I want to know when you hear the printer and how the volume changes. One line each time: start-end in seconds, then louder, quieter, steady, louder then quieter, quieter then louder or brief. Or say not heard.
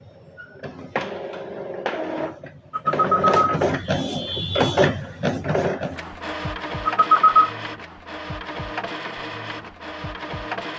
0.0-10.7 louder then quieter.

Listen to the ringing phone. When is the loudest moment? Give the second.
7 s.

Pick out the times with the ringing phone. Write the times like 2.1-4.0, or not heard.
2.7-3.6, 6.8-7.5.